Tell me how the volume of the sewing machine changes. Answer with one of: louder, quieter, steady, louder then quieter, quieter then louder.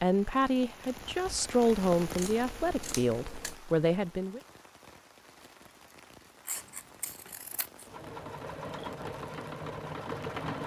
louder.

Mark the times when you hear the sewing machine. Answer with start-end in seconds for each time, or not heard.
6.5-10.6.